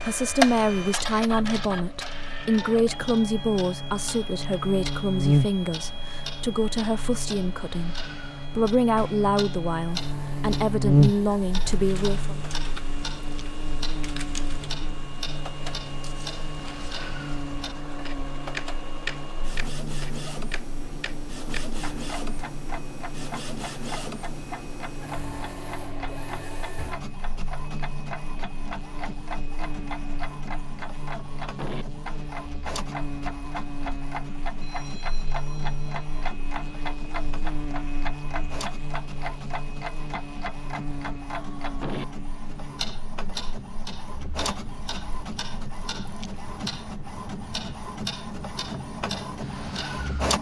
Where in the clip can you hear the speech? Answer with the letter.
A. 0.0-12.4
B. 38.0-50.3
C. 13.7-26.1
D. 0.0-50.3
A.